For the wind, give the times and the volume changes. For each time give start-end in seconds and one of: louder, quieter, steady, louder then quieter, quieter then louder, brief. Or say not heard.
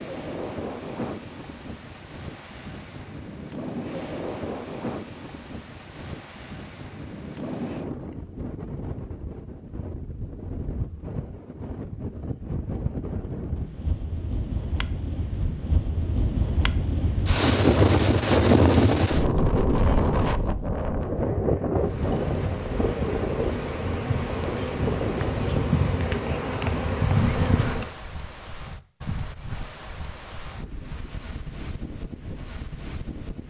0.0-33.4 louder then quieter.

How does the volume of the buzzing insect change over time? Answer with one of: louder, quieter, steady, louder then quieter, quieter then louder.
louder.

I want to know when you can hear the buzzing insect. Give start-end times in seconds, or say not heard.
21.8-27.9.